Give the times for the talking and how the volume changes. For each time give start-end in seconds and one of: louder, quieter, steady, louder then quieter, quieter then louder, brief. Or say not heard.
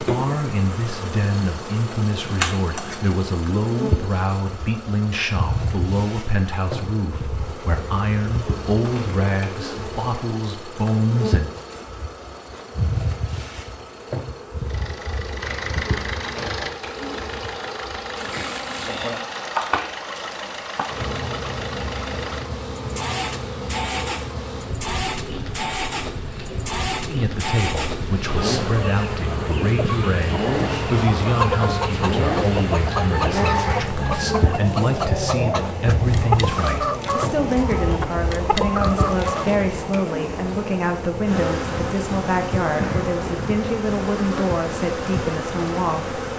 0.0-11.5 steady
27.1-46.2 steady.